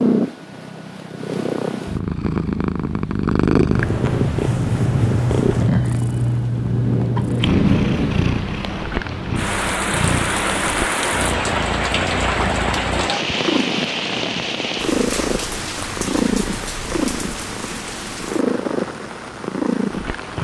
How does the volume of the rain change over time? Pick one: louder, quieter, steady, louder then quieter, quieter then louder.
quieter.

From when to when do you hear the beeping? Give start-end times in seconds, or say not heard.
not heard.